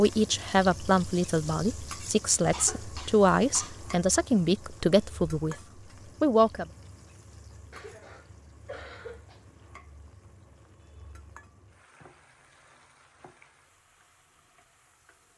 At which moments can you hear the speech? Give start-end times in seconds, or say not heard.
0.0-5.5, 6.2-6.7.